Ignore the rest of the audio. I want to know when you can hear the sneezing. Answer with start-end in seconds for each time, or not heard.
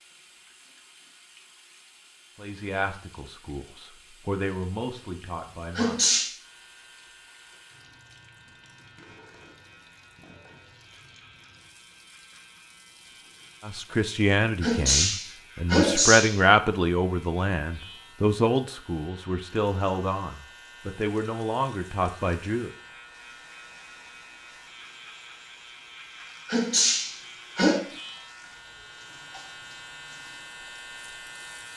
5.8-6.3, 14.6-16.4, 26.4-27.8.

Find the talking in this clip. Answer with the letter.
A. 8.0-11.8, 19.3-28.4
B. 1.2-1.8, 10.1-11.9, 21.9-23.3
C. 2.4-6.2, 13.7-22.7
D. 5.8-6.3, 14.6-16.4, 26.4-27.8
C.